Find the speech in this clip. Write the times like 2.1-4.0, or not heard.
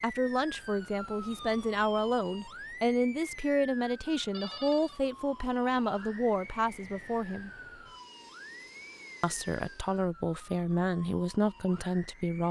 0.0-7.5, 9.2-12.4.